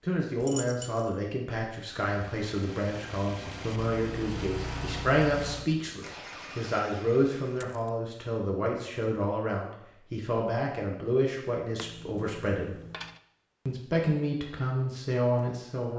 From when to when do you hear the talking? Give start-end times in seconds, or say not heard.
0.0-12.8, 13.7-15.9.